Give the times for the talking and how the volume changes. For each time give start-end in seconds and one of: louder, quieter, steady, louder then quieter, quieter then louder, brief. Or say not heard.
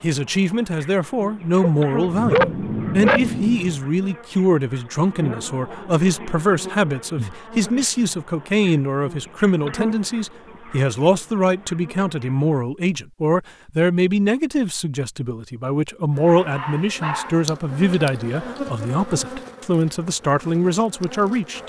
0.0-21.6 steady.